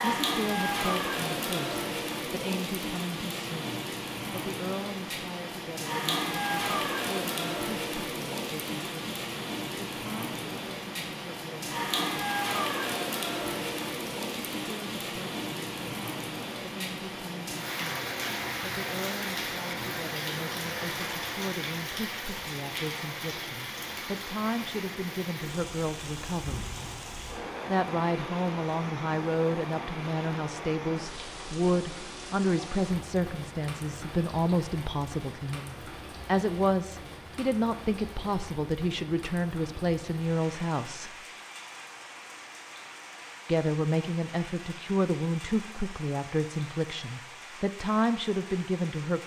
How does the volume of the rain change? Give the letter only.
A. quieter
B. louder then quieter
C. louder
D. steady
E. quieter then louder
A.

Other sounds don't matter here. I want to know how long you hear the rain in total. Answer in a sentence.
The rain can be heard for 49 seconds in total.